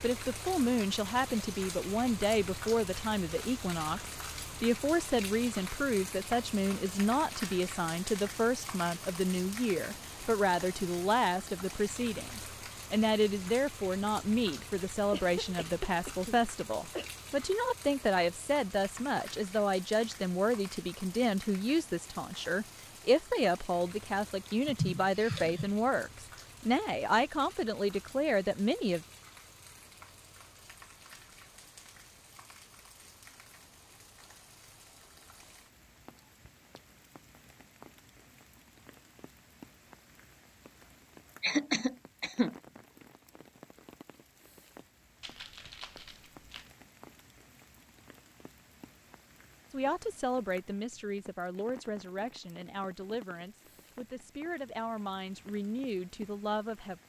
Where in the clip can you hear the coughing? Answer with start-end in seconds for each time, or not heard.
14.6-17.1, 24.6-25.7, 41.4-42.5.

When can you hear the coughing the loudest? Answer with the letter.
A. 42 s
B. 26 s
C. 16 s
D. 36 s
A.